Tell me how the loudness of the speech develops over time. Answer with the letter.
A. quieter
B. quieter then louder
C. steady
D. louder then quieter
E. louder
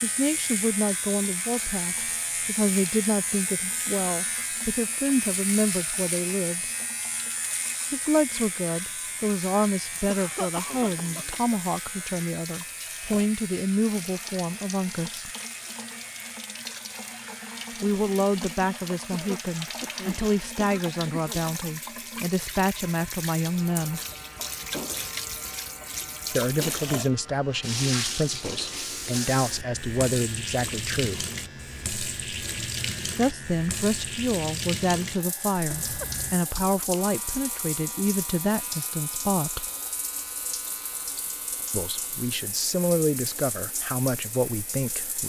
C.